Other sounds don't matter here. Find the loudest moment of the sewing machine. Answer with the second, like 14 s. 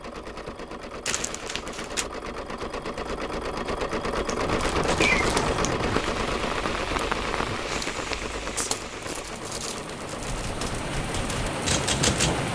5 s.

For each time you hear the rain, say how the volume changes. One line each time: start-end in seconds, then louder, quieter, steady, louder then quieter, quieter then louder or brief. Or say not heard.
4.3-12.5 quieter then louder.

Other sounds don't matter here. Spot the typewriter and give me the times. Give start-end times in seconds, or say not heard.
10.2-12.5.